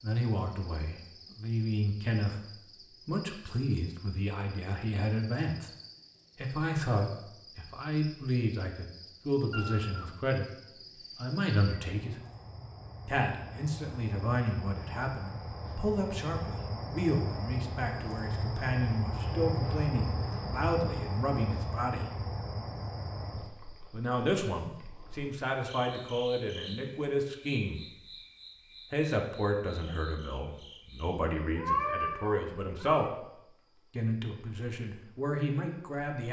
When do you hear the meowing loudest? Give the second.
32 s.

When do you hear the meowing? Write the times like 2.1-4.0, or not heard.
9.5-10.2, 31.6-33.1.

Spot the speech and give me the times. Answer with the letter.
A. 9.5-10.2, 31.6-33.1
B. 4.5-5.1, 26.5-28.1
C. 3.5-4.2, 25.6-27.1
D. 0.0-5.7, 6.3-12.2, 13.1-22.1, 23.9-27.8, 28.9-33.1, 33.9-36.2
D.